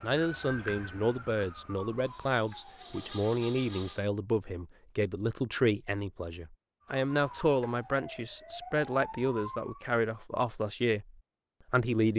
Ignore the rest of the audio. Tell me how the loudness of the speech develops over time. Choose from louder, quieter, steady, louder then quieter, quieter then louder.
steady.